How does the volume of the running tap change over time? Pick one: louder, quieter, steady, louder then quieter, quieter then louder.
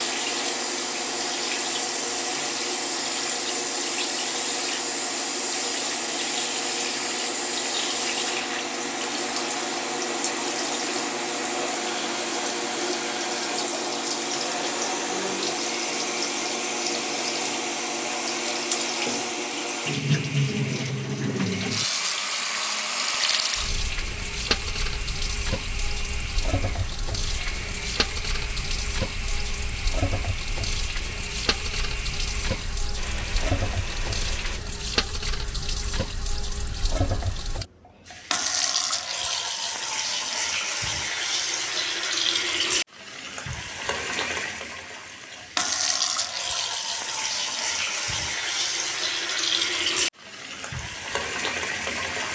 steady.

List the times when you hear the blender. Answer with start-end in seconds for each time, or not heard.
0.0-34.6.